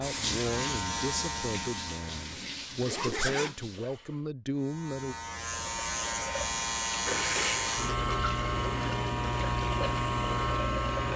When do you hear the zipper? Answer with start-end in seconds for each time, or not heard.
2.1-3.5, 7.0-8.0.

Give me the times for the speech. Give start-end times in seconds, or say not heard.
0.0-5.2.